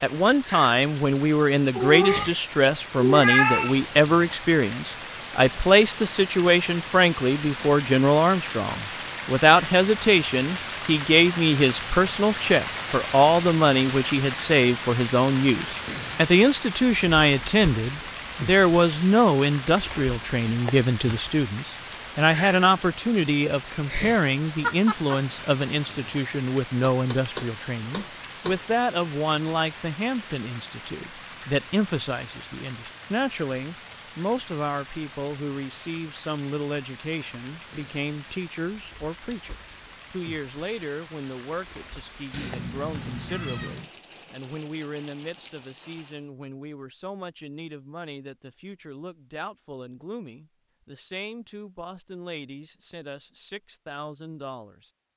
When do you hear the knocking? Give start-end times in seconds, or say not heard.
26.9-28.6.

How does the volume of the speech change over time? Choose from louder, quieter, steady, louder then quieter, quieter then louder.
quieter.